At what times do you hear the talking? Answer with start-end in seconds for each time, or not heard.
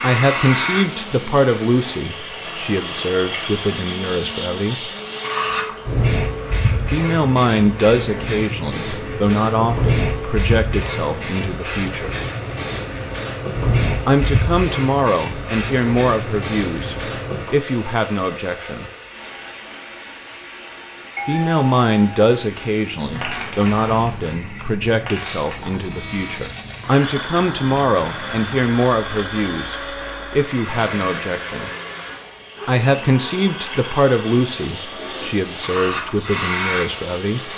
0.0-4.8, 6.9-12.2, 14.1-18.9, 21.2-31.7, 32.6-37.5.